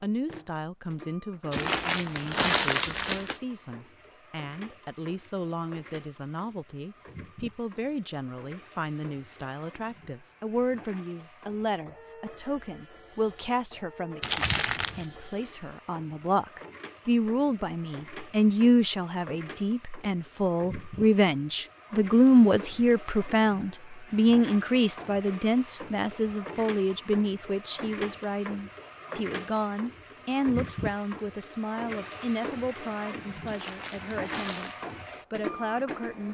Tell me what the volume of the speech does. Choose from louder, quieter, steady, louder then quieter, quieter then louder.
louder then quieter.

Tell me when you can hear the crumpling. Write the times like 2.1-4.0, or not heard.
1.5-3.4, 14.2-15.1, 33.5-34.8.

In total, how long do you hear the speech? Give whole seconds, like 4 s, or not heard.
36 s.